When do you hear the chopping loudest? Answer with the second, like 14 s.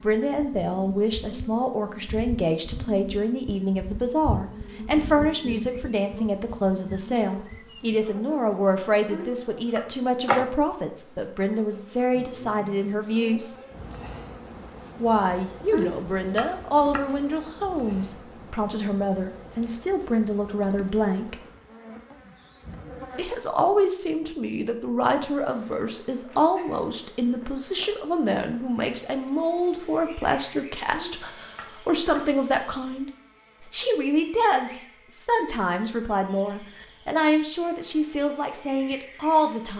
16 s.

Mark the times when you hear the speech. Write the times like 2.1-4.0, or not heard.
0.0-13.6, 15.0-21.4, 23.1-39.7.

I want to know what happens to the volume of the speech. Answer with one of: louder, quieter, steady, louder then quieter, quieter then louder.
steady.